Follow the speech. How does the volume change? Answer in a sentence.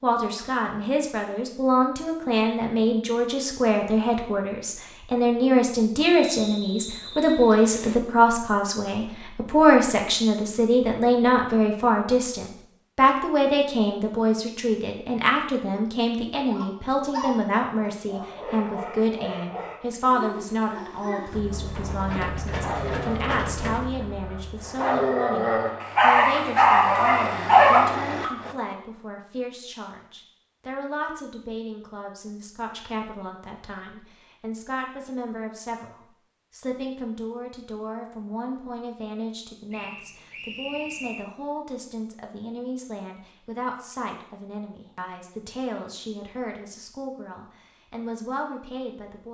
The volume of the speech goes down.